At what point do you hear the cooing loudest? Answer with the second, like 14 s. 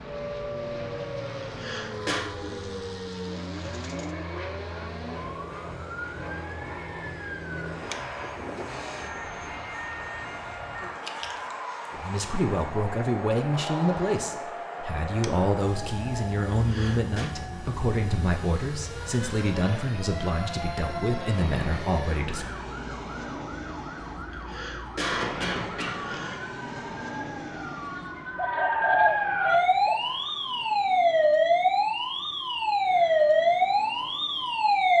29 s.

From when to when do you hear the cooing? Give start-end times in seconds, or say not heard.
2.3-4.2, 28.4-29.2.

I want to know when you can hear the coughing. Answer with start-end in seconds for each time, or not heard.
1.3-2.2, 16.5-17.3, 24.2-26.4.